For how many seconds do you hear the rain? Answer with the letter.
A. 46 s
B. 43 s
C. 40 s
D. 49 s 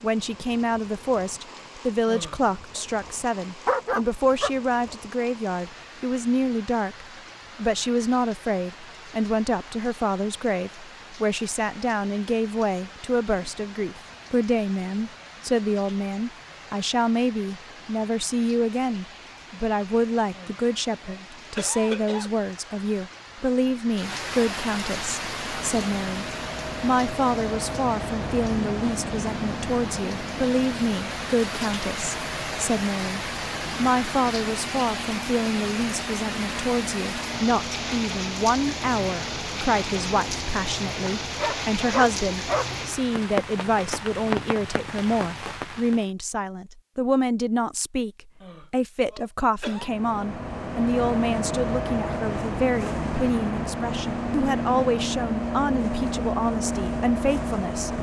A.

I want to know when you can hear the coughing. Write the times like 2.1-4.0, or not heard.
2.0-2.9, 20.3-22.3, 48.4-50.0.